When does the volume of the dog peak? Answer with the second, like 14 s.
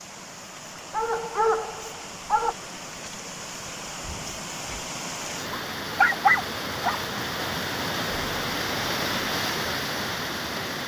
6 s.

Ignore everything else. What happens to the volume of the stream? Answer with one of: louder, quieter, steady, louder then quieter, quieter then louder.
louder.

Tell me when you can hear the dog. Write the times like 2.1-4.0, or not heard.
0.9-2.5, 5.5-7.0.